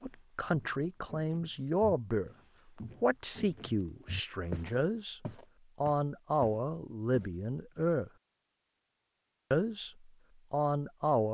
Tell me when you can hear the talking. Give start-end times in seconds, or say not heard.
0.0-2.3, 3.0-5.2, 5.8-8.1, 9.5-11.2.